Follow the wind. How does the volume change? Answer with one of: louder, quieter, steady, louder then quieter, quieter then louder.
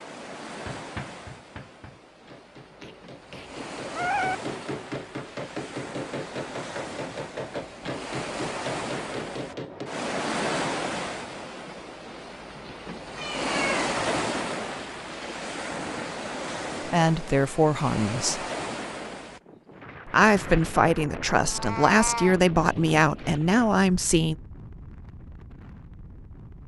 louder then quieter.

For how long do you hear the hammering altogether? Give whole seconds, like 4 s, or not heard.
9 s.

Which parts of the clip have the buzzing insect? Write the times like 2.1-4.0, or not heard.
not heard.